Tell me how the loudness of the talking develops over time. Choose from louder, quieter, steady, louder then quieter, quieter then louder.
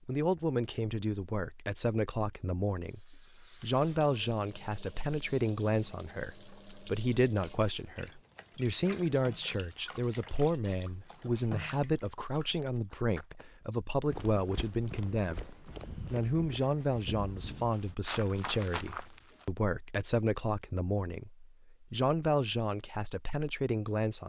steady.